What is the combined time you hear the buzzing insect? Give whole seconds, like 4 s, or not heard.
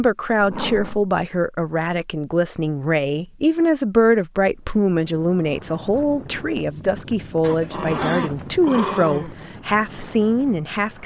not heard.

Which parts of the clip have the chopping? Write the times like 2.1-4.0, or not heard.
not heard.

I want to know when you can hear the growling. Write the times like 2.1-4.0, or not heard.
0.3-1.1, 7.4-9.4.